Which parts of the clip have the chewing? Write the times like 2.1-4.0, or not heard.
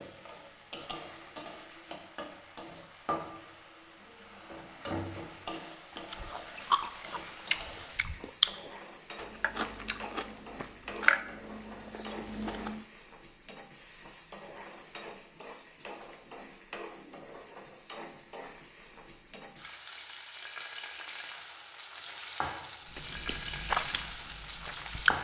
6.0-8.5, 9.2-12.8, 22.9-25.1.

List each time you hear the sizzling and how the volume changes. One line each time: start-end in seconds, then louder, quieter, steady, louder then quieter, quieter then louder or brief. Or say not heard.
0.0-25.1 steady.